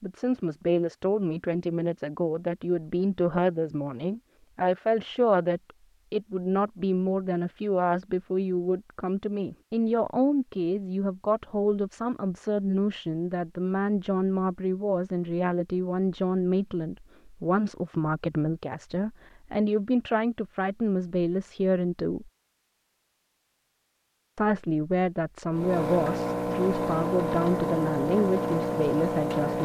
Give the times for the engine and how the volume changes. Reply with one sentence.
You can hear the engine from 25.5 to 29.6 s, at a steady volume.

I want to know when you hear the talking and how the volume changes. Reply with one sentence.
You can hear the talking from 0.0 to 22.3 s, at a steady volume; and from 24.4 to 29.6 s, at a steady volume.